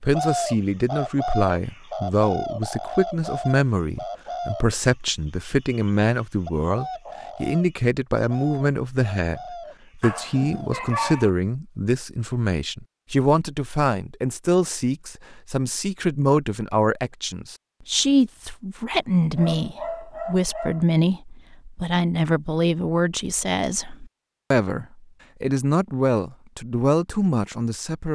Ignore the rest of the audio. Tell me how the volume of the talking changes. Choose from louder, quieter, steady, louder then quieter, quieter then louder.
steady.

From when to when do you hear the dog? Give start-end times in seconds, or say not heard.
10.0-11.3, 18.9-20.9.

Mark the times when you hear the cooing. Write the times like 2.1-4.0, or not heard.
0.1-11.1.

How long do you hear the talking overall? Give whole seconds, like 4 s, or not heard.
28 s.